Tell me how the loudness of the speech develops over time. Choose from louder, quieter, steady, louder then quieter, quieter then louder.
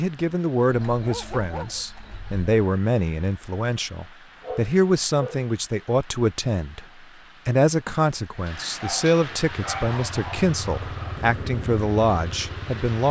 steady.